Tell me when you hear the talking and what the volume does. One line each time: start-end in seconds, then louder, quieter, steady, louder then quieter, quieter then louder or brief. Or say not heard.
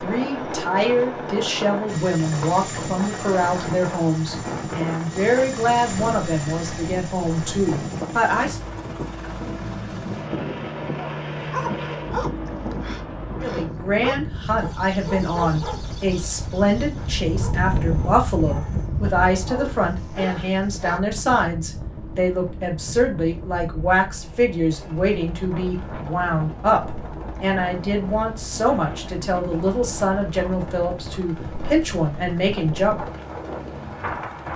0.0-8.6 steady
13.4-33.0 steady.